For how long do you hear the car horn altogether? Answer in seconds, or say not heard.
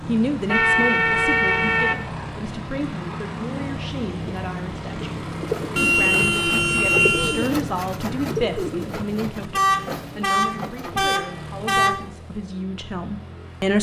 6 s.